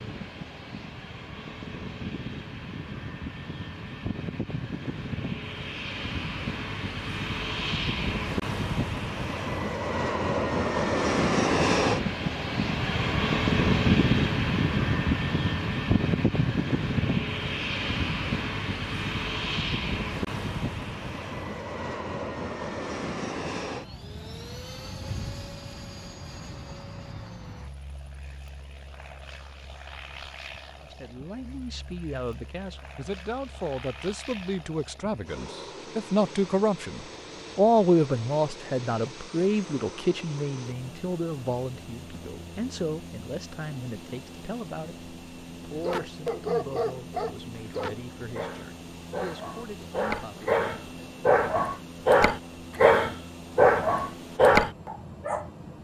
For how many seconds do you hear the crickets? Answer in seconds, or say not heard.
not heard.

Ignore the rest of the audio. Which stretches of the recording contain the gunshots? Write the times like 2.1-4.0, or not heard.
not heard.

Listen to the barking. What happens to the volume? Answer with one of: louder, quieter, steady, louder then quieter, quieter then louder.
quieter then louder.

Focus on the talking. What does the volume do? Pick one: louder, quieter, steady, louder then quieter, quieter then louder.
louder then quieter.